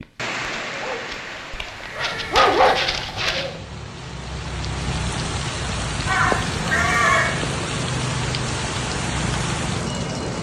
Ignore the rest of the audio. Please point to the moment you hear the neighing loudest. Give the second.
7 s.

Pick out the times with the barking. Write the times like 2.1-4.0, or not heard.
0.0-3.5.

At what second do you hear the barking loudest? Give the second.
3 s.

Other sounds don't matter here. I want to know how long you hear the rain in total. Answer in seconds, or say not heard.
10 s.